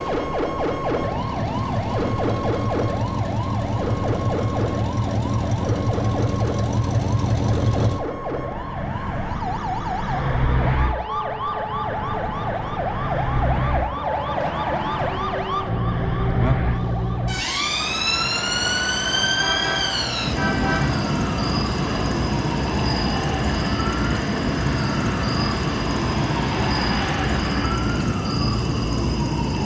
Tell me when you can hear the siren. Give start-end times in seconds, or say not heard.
0.0-29.5.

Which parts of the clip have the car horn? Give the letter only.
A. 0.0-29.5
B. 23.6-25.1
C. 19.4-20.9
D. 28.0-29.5
C.